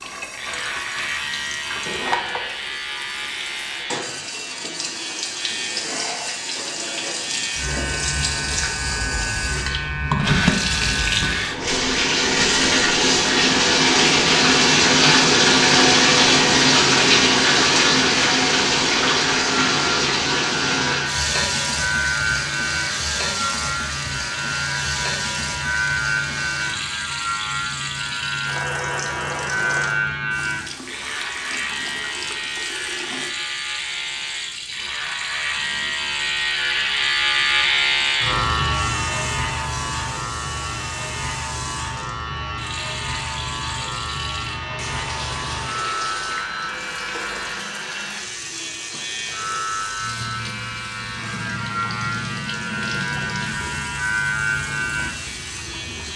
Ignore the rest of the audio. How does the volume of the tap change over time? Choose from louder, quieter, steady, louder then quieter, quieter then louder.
louder then quieter.